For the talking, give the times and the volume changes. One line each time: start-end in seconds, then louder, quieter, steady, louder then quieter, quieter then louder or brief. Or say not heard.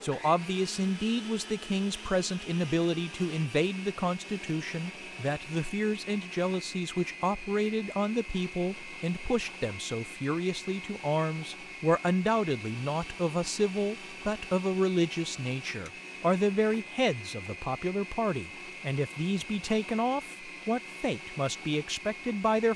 0.0-22.7 steady.